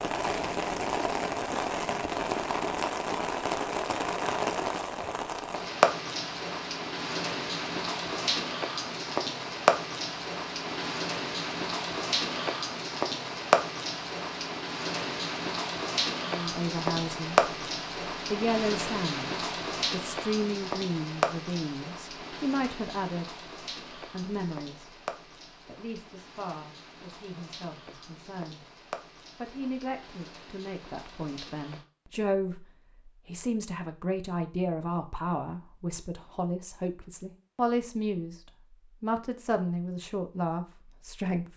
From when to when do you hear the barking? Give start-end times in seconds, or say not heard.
not heard.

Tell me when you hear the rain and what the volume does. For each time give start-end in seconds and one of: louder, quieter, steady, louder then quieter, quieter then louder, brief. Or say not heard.
0.0-31.9 quieter.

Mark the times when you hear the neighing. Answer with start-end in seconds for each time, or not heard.
not heard.